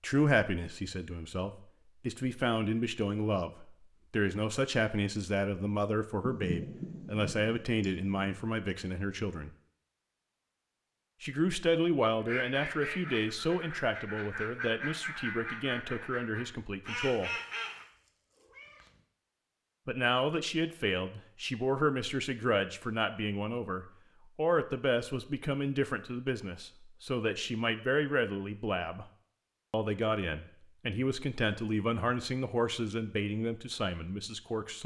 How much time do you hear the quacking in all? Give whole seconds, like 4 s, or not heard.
6 s.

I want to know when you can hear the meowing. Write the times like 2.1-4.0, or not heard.
17.8-19.1.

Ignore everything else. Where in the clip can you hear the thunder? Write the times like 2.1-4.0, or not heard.
6.2-8.4.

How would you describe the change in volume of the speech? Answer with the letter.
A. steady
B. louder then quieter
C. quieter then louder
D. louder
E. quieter
A.